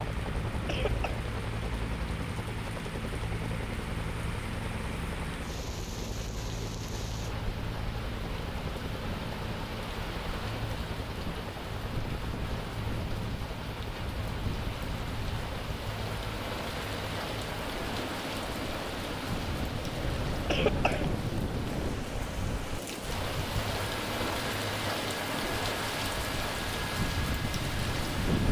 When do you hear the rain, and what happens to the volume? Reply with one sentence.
The rain can be heard from 0.0 to 28.4 s, getting louder.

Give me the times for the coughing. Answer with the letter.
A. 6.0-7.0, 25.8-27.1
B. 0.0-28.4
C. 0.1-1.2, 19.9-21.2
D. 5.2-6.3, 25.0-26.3
C.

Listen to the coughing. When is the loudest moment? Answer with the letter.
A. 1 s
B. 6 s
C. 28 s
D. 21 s
D.